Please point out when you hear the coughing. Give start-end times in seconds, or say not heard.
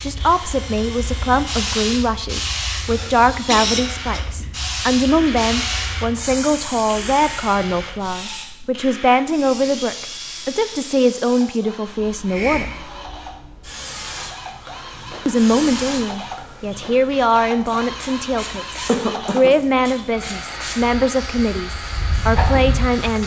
2.9-4.2, 18.9-19.5.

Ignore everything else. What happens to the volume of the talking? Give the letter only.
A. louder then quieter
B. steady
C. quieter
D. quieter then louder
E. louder
B.